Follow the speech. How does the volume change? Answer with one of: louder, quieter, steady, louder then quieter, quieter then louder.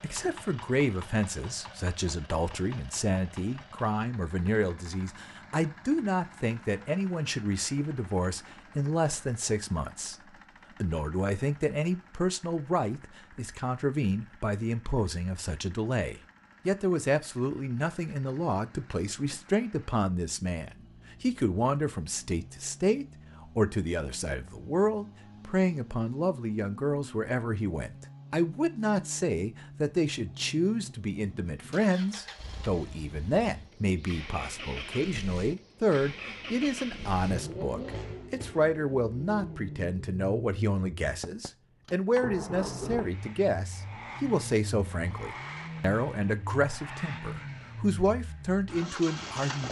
steady.